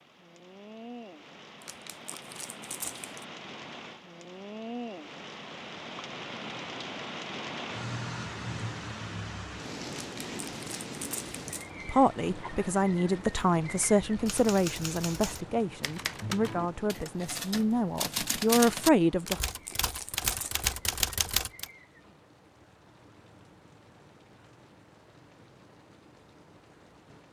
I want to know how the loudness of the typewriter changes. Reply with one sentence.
The volume of the typewriter goes up.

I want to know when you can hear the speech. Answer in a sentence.
You can hear the speech from 11.8 to 19.4 s.